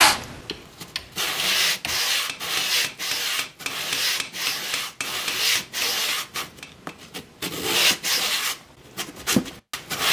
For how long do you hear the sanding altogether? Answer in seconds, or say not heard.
10 s.